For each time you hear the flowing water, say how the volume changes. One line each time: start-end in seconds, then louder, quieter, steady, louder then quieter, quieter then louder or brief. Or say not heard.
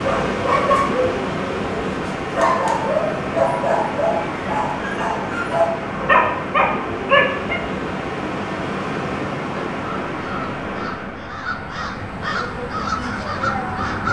0.0-11.3 steady.